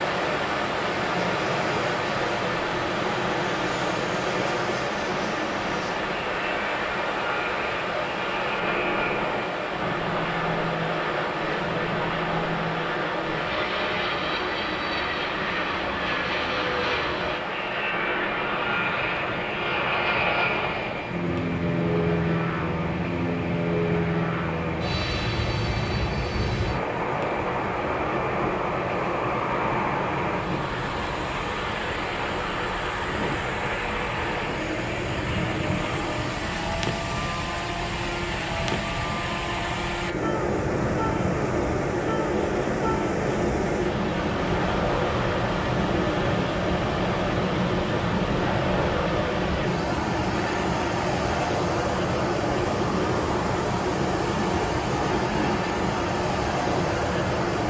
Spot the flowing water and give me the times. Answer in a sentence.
You can hear the flowing water from 0.0 to 57.6 s.